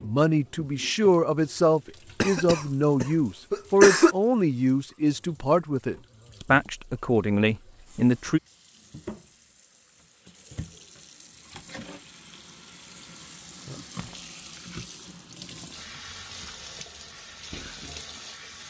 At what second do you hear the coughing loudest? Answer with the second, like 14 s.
4 s.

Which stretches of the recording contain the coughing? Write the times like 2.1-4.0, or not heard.
2.2-4.2.